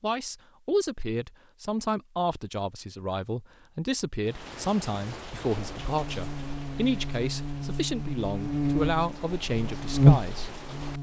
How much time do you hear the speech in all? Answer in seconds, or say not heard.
11 s.